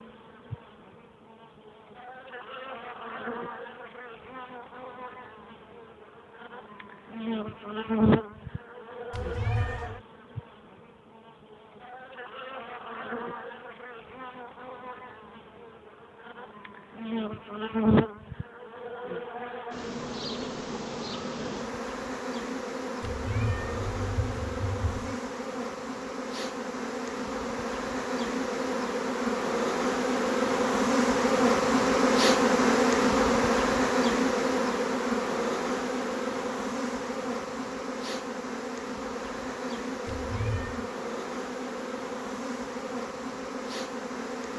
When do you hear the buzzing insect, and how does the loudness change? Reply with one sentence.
The buzzing insect can be heard from 0.0 to 44.5 s, getting louder then quieter.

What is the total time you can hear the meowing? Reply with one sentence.
The meowing can be heard for 4 seconds in total.